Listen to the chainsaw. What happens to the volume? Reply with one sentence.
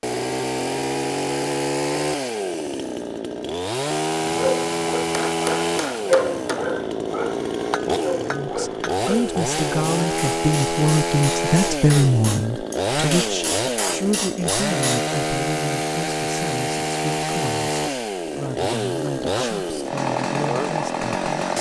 The volume of the chainsaw stays about the same.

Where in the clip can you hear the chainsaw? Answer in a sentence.
The chainsaw can be heard from 0.0 to 21.5 s.